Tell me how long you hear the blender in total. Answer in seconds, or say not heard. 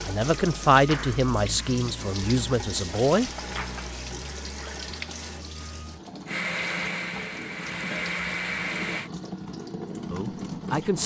3 s.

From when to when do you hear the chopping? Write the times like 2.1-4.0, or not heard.
not heard.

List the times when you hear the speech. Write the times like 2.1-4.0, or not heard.
0.1-3.3, 10.1-11.0.